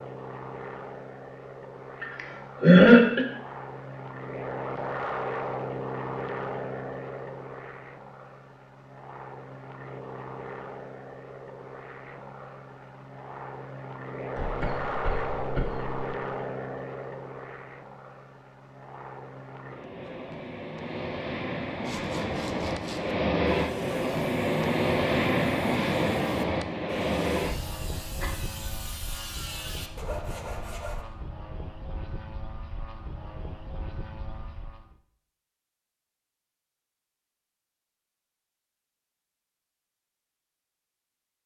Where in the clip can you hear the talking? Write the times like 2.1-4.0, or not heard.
not heard.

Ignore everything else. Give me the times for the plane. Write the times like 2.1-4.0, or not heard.
0.0-35.0.